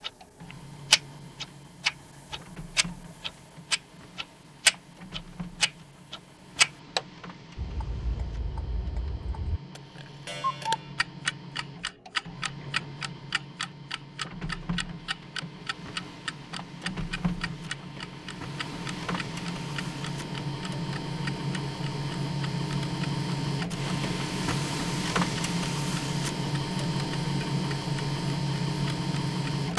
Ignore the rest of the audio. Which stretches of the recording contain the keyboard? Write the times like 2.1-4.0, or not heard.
not heard.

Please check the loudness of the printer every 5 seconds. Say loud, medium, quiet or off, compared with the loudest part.
quiet, quiet, quiet, medium, loud, loud.